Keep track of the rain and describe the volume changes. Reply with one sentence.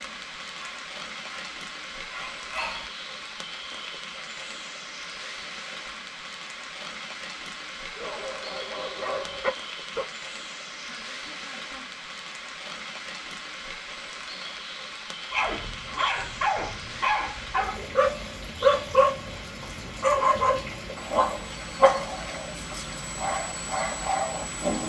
The loudness of the rain stays about the same.